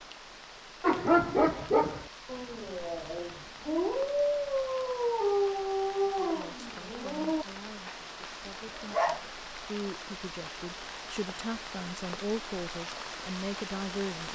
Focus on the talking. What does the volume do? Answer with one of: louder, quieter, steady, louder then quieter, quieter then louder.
louder.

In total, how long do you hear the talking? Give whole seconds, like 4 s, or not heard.
8 s.